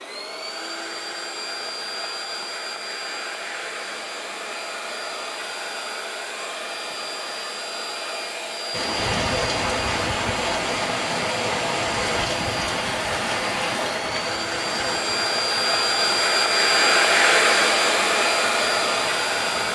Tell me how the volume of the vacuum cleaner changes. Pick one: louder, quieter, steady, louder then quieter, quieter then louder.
louder.